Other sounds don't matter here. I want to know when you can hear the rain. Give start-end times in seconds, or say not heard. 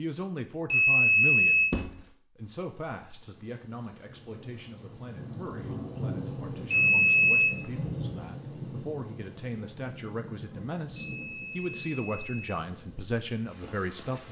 2.4-14.2.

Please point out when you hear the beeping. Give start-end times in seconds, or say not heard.
0.7-1.7, 6.7-7.5, 11.0-12.6.